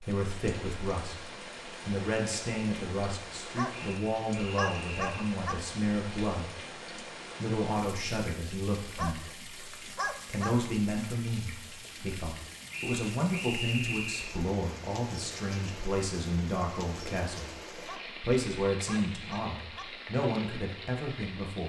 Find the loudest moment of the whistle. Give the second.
14 s.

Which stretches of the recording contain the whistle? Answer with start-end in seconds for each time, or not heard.
3.7-5.3, 12.7-14.3.